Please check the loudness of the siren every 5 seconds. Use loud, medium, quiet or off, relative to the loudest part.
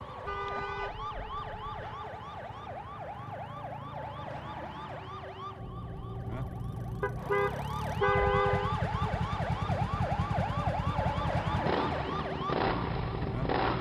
medium, loud, loud.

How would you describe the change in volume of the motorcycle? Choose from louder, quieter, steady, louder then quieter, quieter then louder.
louder.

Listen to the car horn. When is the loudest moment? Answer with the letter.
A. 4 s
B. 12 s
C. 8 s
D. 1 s
C.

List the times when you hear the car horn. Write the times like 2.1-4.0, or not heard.
0.2-2.0, 7.0-8.8.